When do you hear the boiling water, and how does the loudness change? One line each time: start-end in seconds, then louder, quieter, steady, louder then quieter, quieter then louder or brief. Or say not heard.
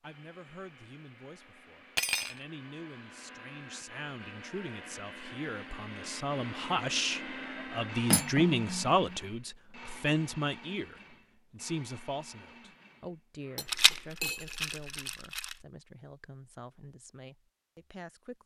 not heard.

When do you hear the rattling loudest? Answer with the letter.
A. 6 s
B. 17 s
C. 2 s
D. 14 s
D.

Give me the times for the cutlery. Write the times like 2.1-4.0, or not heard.
1.9-2.4, 8.1-9.2, 13.6-14.7.